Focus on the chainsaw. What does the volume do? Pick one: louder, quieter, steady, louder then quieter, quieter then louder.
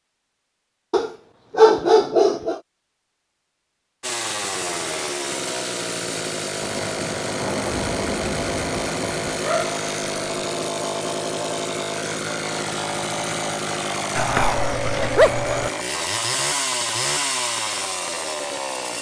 steady.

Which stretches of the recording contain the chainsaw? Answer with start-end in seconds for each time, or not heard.
4.0-18.9.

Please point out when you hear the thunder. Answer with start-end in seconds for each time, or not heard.
6.6-9.4.